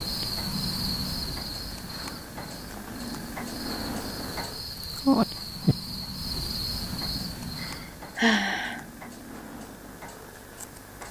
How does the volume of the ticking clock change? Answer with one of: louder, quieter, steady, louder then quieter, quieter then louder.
louder then quieter.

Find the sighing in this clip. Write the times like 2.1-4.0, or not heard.
7.2-8.8.